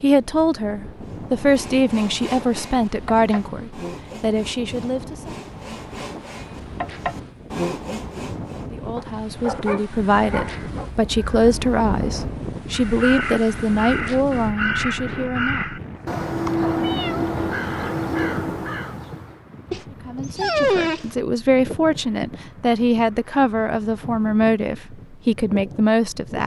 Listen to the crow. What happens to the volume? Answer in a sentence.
The volume of the crow goes up.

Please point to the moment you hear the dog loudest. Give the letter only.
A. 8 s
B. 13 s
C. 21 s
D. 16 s
C.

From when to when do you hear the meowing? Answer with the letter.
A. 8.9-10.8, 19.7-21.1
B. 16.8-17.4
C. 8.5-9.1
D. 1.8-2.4
B.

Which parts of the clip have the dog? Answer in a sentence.
The dog can be heard from 8.9 to 10.8 s and from 19.7 to 21.1 s.